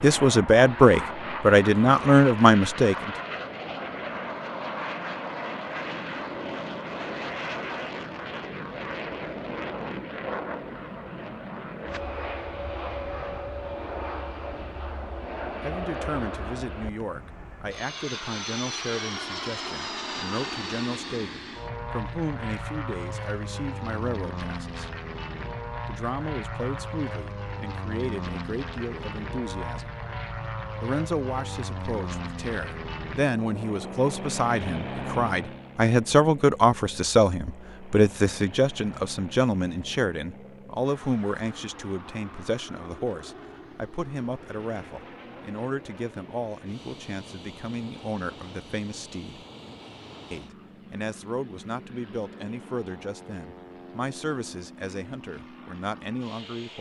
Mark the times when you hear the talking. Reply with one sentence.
You can hear the talking from 0.0 to 3.1 s, from 15.6 to 24.9 s, from 25.9 to 29.9 s, from 30.8 to 49.5 s and from 50.3 to 56.7 s.